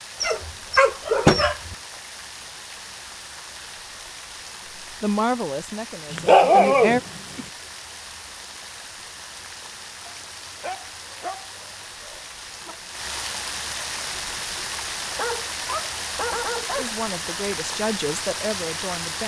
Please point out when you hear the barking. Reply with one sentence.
You can hear the barking from 0.2 to 1.8 s, from 6.1 to 7.4 s, from 10.1 to 12.8 s and from 15.2 to 16.9 s.